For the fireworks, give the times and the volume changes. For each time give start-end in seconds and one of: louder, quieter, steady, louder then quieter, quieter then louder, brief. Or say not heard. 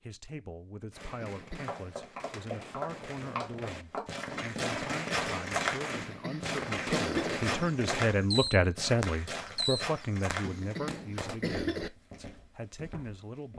0.9-11.4 louder.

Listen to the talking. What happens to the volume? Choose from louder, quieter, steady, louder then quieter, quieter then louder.
louder then quieter.